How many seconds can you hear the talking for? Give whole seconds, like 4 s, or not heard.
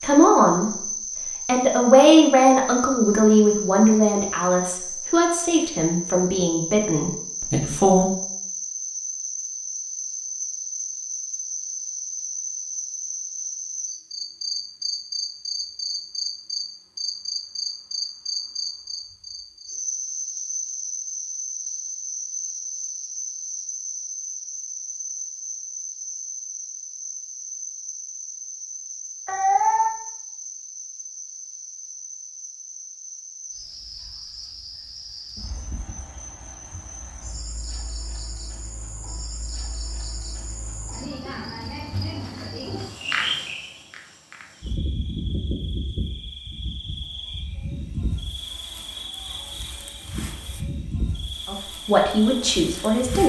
9 s.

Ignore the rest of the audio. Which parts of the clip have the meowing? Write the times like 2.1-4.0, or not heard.
29.2-29.9.